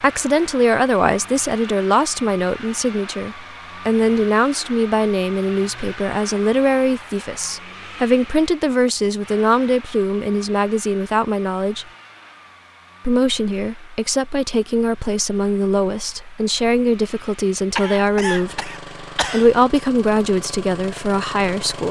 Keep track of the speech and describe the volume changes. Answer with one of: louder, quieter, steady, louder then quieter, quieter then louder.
steady.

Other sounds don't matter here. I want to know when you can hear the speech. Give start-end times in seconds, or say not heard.
0.0-11.8, 13.1-21.8.